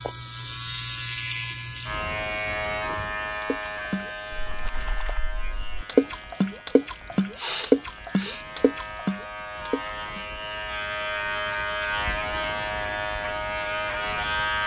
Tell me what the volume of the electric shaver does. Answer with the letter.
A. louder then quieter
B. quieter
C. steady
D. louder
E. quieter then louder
E.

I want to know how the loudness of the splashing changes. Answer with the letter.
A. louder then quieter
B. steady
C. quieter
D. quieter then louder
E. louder
A.